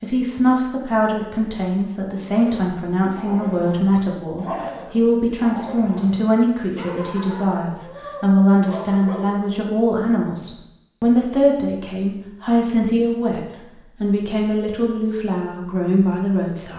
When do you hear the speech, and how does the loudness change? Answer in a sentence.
The speech can be heard from 0.0 to 16.7 s, at a steady volume.